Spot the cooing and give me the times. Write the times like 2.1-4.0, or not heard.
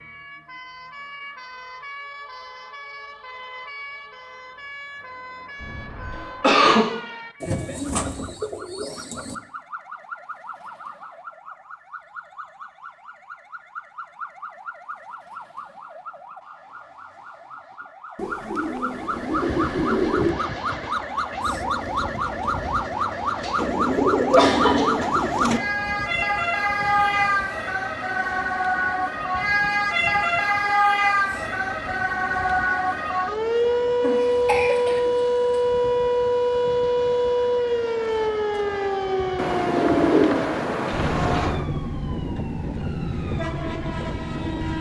7.4-9.3, 18.1-20.4, 23.6-25.6, 39.4-41.6.